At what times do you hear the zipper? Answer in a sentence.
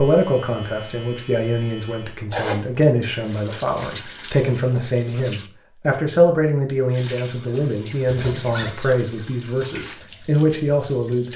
You can hear the zipper from 2.3 to 3.1 s and from 8.1 to 8.8 s.